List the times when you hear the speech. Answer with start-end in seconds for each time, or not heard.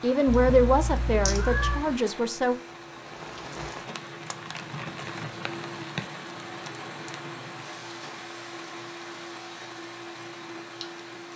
0.0-2.5.